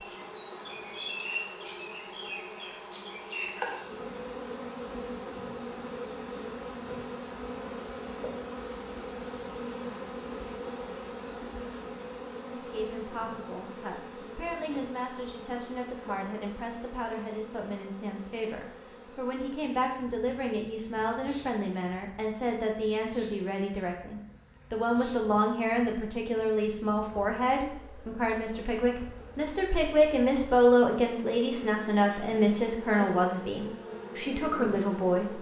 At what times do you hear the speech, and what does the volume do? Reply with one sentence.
The speech can be heard from 12.5 to 35.3 s, getting louder.